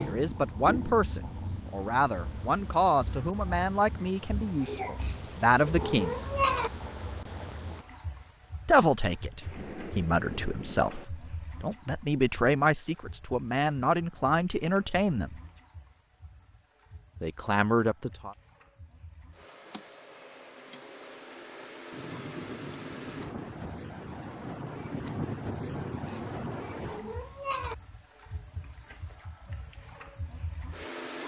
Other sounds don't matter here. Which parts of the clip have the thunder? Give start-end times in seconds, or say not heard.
9.4-11.1, 21.9-26.7.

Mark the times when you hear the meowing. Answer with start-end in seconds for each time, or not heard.
5.0-6.7, 26.1-27.8.